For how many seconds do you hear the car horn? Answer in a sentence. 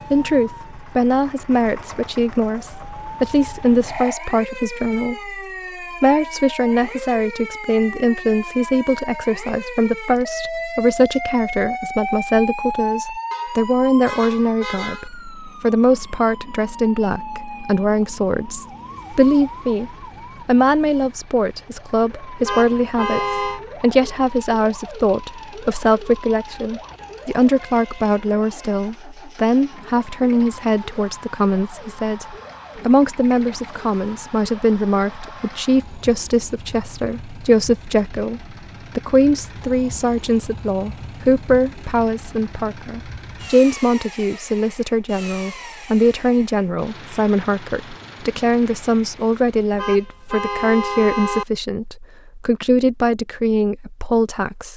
The car horn can be heard for 5 seconds in total.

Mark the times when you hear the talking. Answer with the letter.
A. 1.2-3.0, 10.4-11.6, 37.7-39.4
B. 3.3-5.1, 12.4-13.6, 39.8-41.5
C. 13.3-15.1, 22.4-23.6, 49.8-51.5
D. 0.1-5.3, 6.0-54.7
D.